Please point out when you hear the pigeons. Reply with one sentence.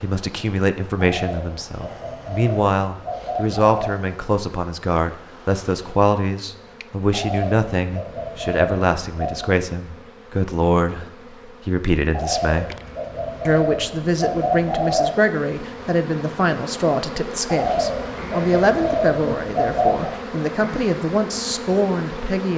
The pigeons can be heard from 0.9 to 4.0 s, from 7.1 to 9.5 s, from 12.1 to 15.1 s and from 17.4 to 20.1 s.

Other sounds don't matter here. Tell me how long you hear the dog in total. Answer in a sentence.
You can't hear the dog here.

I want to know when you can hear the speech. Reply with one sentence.
The speech can be heard from 0.0 to 12.7 s and from 13.4 to 22.5 s.